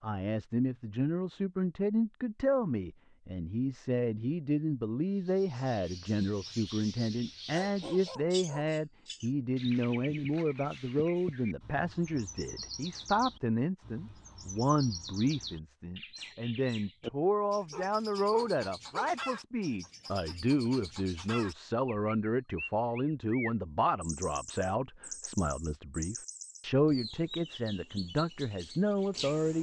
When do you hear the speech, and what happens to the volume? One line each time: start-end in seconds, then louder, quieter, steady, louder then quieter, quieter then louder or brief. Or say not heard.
0.0-29.5 steady.